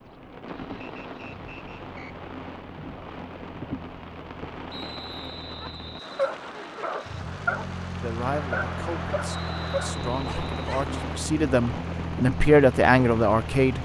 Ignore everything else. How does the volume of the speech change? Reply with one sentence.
The loudness of the speech goes up.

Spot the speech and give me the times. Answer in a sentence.
The speech can be heard from 8.0 to 13.8 s.